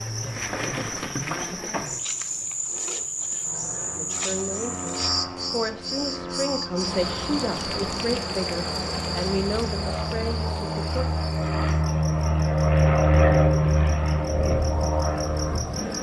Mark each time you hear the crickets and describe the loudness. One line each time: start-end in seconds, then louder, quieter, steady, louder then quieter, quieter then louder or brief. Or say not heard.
0.0-15.9 quieter.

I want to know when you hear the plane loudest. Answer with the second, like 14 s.
13 s.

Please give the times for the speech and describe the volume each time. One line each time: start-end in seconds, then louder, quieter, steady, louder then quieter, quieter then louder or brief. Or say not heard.
4.0-11.0 steady.